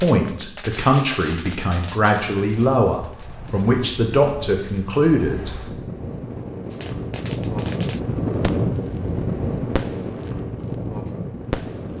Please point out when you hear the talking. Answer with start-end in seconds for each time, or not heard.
0.0-5.8.